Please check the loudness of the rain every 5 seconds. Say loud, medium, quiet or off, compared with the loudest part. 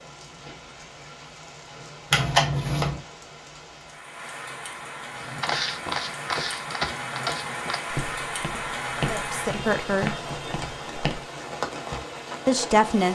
medium, loud, loud.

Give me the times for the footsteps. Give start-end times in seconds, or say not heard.
5.2-11.2.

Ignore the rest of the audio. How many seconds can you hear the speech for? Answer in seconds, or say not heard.
2 s.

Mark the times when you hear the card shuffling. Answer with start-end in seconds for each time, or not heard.
2.1-3.0.